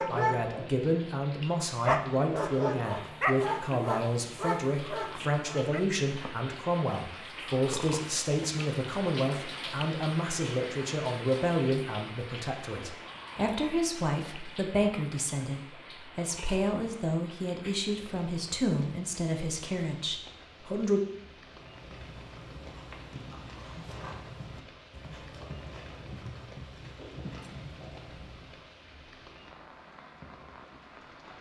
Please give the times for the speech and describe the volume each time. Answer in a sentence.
You can hear the speech from 0.1 to 21.0 s, at a steady volume.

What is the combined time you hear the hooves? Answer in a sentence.
The hooves can be heard for 7 seconds in total.